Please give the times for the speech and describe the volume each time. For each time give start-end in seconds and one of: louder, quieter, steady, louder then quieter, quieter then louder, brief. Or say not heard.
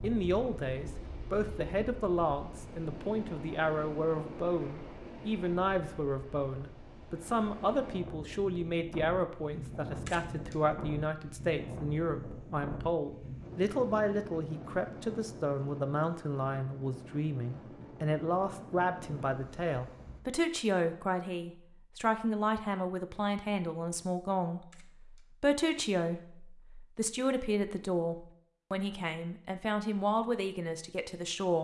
0.0-31.5 steady.